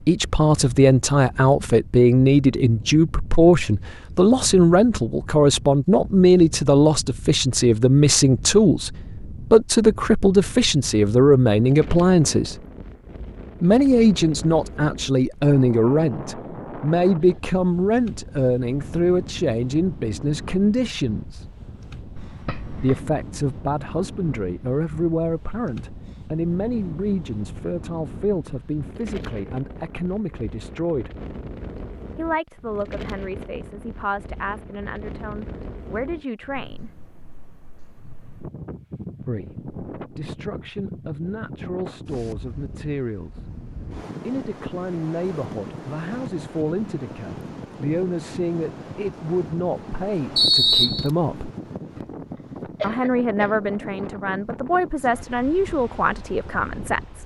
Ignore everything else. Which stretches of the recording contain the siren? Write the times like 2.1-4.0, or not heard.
not heard.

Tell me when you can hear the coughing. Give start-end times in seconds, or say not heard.
22.1-23.1, 52.0-53.6.